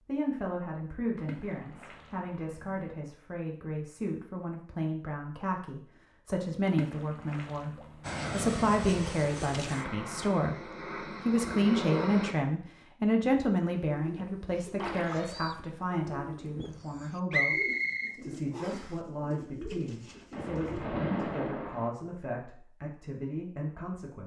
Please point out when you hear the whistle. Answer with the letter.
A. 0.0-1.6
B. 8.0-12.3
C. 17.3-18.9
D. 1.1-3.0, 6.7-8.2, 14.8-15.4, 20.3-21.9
C.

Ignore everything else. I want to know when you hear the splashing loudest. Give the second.
21 s.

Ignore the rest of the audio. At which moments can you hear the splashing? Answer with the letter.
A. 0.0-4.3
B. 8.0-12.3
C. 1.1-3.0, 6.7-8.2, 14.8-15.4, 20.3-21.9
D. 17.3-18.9
C.